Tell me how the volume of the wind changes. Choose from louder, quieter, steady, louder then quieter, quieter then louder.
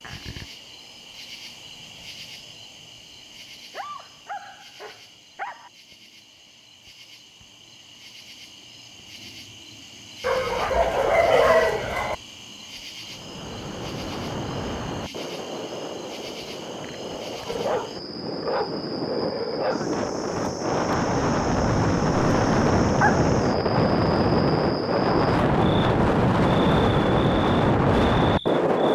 louder.